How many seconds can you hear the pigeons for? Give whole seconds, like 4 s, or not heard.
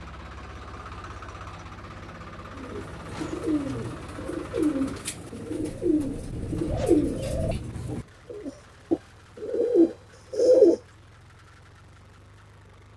8 s.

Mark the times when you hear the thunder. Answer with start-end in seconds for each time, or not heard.
5.6-7.6.